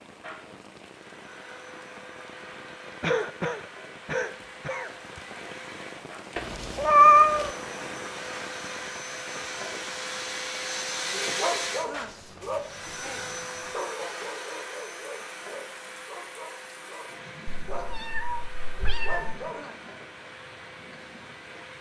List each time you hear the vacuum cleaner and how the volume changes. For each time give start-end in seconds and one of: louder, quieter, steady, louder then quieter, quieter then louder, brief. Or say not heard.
0.1-21.7 louder then quieter.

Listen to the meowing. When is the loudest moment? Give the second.
7 s.